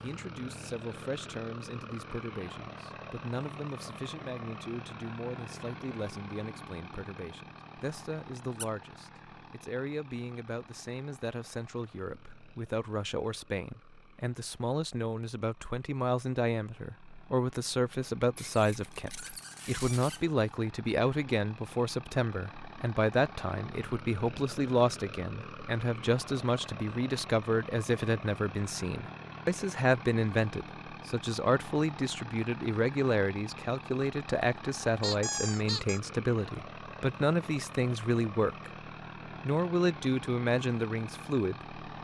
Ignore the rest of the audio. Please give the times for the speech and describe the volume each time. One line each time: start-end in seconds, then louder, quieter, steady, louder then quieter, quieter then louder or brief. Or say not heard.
0.0-38.7 louder
39.5-41.8 brief.